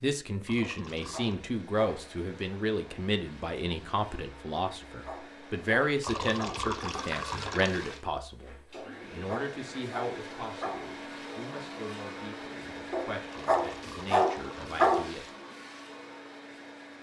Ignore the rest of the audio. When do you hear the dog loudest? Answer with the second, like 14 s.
15 s.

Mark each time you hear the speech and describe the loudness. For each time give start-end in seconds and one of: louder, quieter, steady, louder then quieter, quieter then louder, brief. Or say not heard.
0.0-15.2 quieter.